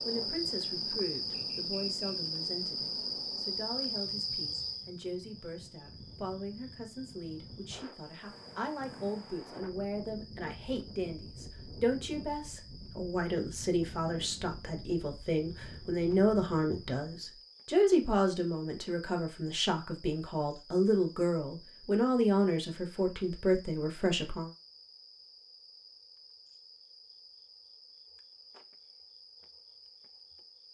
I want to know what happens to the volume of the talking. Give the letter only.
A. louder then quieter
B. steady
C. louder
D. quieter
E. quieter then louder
C.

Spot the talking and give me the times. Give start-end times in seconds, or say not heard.
0.1-24.5.